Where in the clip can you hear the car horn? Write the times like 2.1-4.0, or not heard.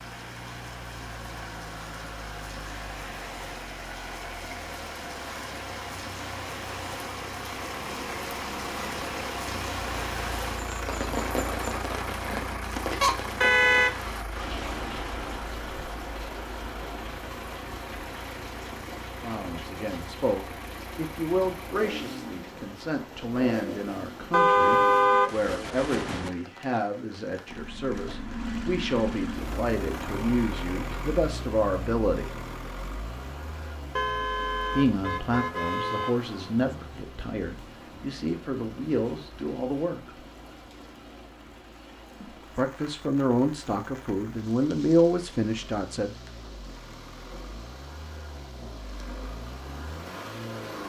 13.0-13.9, 24.3-26.3, 34.0-36.1.